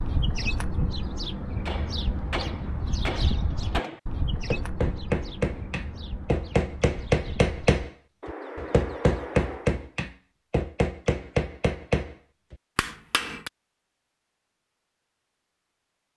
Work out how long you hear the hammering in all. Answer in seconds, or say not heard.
12 s.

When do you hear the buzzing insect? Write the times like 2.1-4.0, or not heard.
not heard.